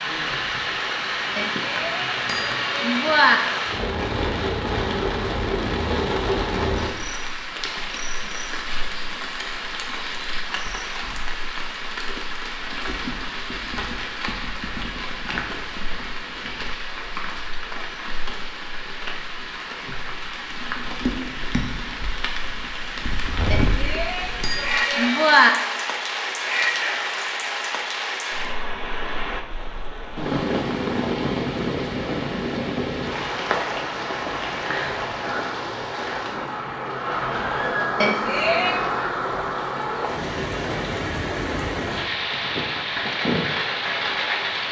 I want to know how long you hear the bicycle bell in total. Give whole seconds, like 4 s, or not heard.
5 s.